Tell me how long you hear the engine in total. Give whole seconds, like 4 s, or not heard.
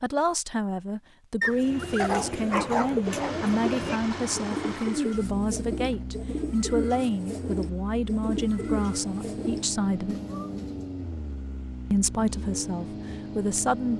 11 s.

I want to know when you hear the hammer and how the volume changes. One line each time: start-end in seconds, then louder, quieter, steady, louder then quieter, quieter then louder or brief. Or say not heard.
not heard.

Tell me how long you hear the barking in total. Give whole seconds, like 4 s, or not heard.
2 s.